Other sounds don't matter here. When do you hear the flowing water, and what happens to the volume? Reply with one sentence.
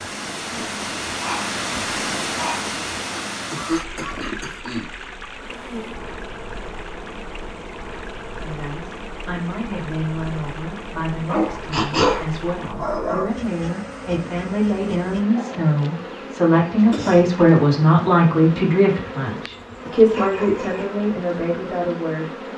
You can hear the flowing water from 0.0 to 12.8 s, getting quieter.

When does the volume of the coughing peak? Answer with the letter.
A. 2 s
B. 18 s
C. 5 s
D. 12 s
D.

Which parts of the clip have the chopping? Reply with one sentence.
The chopping can't be heard in this clip.